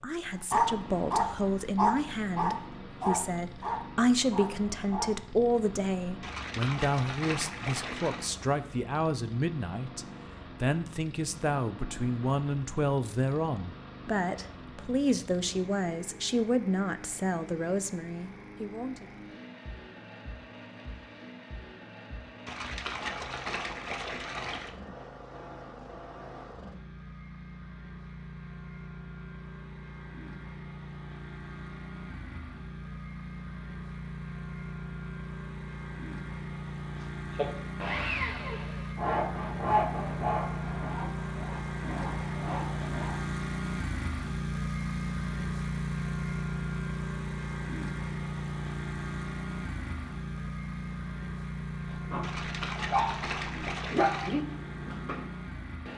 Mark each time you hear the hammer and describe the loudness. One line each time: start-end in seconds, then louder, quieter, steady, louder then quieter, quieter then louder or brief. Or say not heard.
not heard.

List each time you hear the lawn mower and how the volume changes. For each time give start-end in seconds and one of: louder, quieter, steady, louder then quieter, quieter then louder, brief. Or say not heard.
0.0-55.9 louder.